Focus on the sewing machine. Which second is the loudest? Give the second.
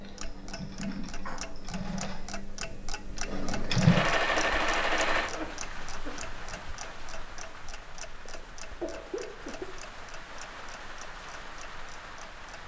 4 s.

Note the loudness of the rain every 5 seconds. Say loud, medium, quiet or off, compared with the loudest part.
off, loud, loud.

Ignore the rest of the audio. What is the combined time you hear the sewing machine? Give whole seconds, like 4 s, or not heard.
5 s.